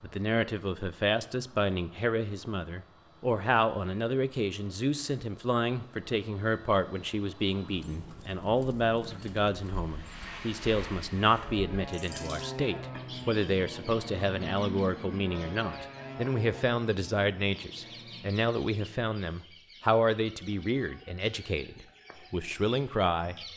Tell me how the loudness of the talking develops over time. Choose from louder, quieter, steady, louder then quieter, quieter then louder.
steady.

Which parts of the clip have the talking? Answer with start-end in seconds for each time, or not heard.
0.0-23.4.